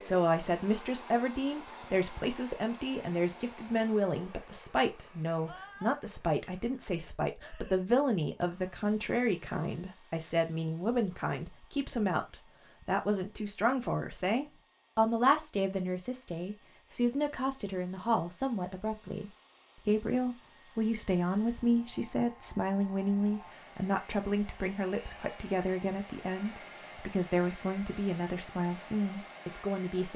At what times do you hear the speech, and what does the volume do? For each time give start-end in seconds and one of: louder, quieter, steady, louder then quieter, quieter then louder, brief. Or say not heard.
0.0-30.1 steady.